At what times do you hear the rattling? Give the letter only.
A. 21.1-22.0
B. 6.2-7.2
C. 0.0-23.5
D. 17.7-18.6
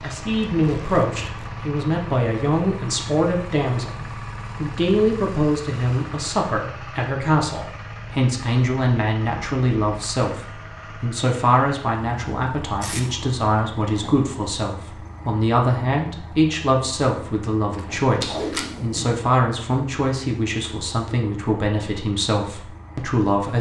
D.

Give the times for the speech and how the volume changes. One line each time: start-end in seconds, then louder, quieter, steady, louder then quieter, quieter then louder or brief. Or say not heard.
0.0-23.5 steady.